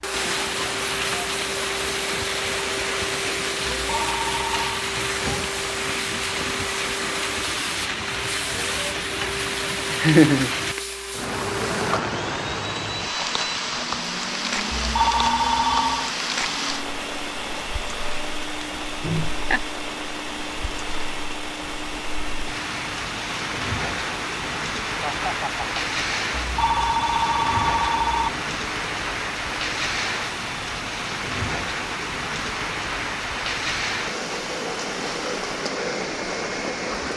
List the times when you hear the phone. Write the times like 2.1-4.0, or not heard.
3.9-4.8, 14.7-16.1, 26.4-28.3.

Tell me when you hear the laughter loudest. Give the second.
10 s.